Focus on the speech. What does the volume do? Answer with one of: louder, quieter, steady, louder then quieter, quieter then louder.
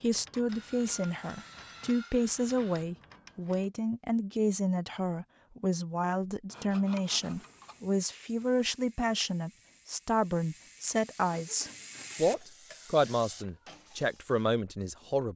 steady.